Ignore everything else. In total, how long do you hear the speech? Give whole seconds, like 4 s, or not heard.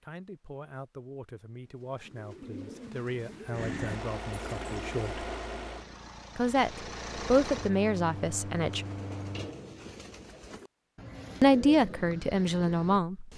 10 s.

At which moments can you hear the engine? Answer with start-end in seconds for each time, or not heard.
3.5-9.5.